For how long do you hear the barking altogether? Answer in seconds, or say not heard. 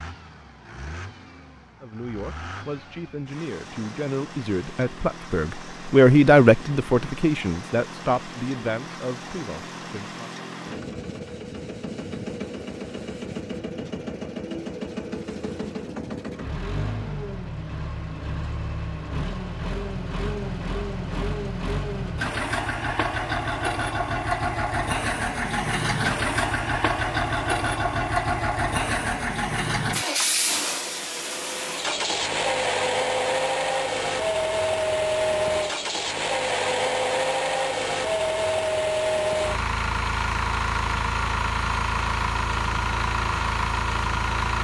not heard.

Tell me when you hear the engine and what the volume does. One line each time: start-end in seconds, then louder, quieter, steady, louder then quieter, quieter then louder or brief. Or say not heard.
0.0-44.5 louder.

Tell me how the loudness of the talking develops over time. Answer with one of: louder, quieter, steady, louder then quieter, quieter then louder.
louder then quieter.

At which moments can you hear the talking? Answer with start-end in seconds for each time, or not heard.
1.8-10.2.